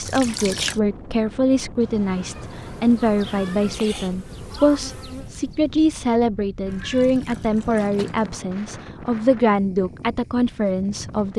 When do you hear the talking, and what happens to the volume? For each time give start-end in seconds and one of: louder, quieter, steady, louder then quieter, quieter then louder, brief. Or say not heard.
0.0-11.3 steady.